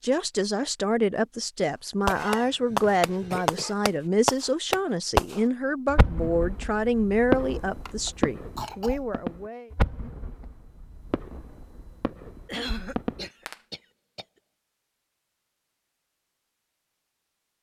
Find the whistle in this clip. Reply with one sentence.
You can't hear the whistle here.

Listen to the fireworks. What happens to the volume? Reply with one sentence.
The volume of the fireworks goes down.